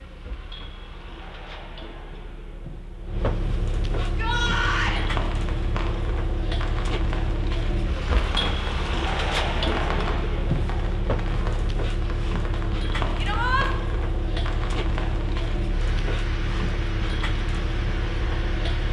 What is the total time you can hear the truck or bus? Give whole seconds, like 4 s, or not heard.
19 s.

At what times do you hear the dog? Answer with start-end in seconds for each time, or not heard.
not heard.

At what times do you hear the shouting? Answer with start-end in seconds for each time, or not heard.
4.0-5.0, 13.2-13.7.